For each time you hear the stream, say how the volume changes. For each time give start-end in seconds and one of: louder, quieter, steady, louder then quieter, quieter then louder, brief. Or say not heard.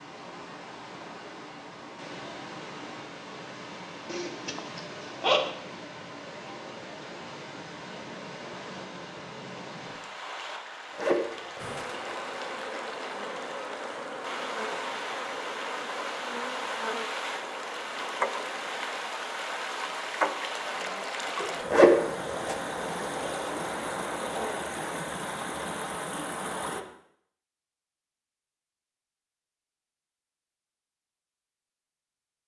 0.0-26.9 louder.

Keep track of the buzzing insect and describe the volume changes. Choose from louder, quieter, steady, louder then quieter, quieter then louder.
steady.